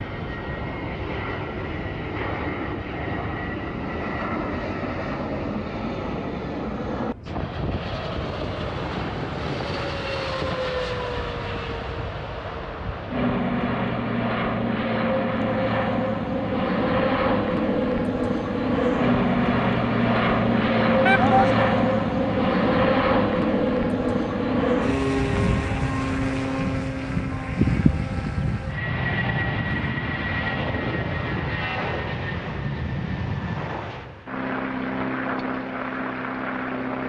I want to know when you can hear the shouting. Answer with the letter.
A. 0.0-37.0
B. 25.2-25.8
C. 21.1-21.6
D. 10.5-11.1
C.